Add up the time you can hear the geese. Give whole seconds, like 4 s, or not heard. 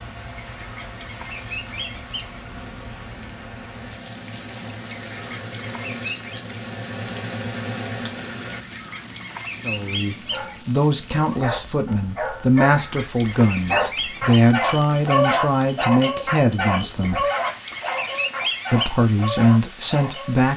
9 s.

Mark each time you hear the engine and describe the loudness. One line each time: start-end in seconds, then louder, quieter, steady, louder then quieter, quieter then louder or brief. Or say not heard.
0.0-8.7 louder.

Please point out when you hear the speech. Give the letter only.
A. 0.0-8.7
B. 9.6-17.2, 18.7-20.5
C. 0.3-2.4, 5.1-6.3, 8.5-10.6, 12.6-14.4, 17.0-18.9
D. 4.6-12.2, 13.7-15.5
B.